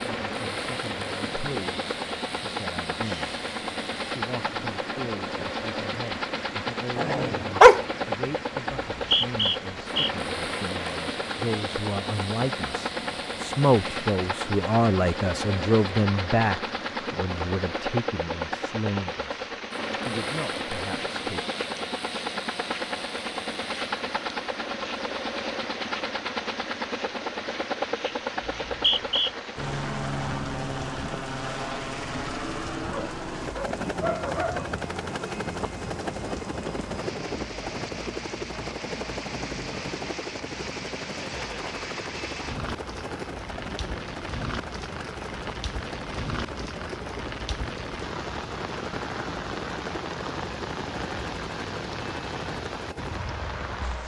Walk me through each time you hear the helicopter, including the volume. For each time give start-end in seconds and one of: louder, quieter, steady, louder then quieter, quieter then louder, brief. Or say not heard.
0.0-54.0 quieter.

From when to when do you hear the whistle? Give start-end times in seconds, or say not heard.
8.9-10.1, 28.4-29.3.